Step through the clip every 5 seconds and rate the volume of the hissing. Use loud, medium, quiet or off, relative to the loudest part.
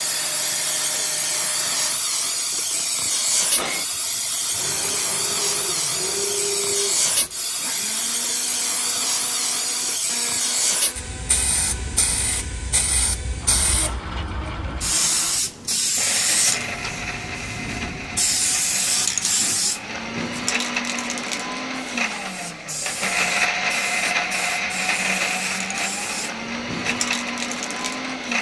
loud, loud, loud, loud, medium, medium.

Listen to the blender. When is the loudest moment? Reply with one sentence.
The loudest moment of the blender is at 24 seconds.